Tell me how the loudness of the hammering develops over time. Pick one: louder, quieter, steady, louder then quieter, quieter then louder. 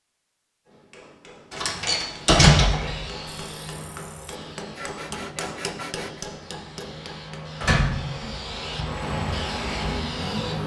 louder.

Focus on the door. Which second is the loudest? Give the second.
2 s.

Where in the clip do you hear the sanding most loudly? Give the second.
6 s.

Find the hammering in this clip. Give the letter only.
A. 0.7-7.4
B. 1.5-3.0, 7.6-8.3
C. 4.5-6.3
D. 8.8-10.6
A.